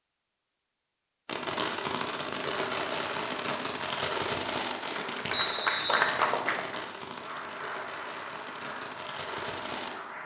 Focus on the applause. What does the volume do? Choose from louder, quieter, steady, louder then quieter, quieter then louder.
quieter.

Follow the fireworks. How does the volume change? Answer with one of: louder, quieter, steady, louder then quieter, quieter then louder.
quieter.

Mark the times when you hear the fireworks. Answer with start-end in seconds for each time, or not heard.
1.2-9.9.